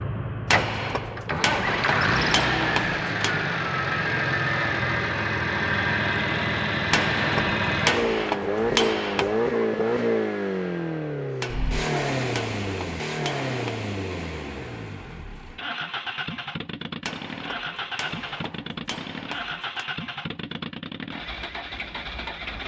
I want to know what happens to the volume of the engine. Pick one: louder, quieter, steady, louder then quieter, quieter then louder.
quieter.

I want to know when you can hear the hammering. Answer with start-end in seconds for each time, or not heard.
0.5-3.4, 6.9-9.3, 11.4-13.8, 17.1-19.9.